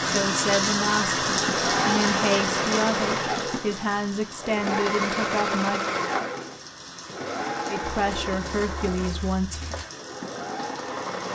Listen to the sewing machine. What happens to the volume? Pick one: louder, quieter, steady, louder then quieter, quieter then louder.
quieter.